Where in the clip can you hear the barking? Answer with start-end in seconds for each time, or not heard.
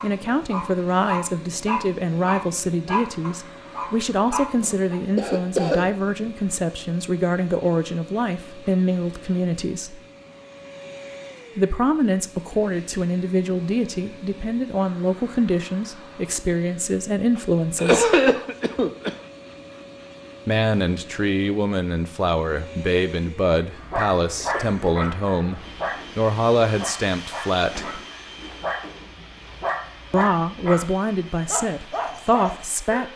0.0-5.0, 23.7-30.9, 31.4-33.1.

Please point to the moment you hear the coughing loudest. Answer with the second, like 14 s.
18 s.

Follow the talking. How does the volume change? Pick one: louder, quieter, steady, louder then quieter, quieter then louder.
steady.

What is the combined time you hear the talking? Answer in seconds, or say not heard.
27 s.